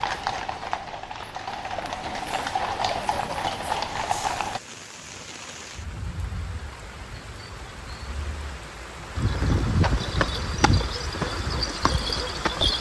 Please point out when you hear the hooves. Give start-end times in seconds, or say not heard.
0.0-4.6, 9.2-12.7.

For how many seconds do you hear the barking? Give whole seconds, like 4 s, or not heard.
not heard.